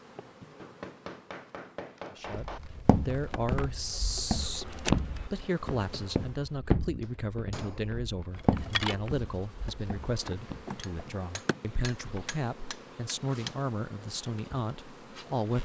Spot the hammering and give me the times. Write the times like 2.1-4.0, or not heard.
0.6-2.6, 7.0-8.0, 10.8-13.6.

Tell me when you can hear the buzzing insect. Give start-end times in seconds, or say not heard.
0.0-6.4, 8.3-15.5.